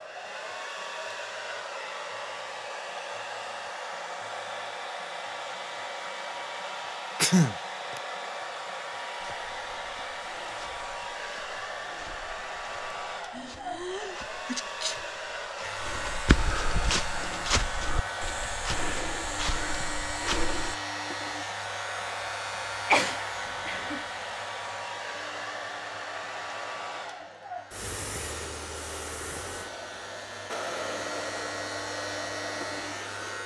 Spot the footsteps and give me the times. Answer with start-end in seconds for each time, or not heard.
9.2-20.8.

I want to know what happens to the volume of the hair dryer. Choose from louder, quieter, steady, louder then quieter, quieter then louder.
steady.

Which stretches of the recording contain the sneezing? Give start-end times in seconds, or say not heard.
7.2-8.0, 13.3-14.9, 22.9-24.1.